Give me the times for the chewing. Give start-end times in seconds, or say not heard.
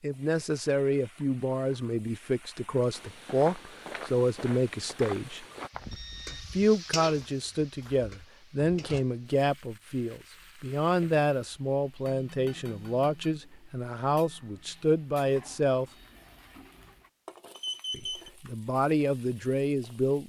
not heard.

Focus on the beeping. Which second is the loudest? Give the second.
18 s.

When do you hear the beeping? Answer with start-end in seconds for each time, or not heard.
5.7-6.5, 17.6-18.3.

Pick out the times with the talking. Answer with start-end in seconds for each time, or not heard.
0.0-5.5, 6.3-15.8, 17.9-20.2.